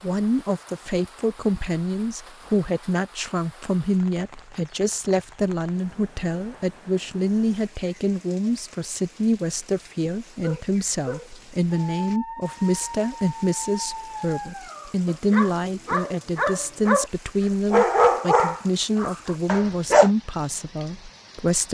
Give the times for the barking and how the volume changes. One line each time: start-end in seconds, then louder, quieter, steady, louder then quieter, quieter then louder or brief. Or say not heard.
10.4-17.1 louder
17.7-20.1 brief.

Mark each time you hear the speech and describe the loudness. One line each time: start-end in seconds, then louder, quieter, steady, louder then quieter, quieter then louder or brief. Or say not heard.
0.0-21.6 steady.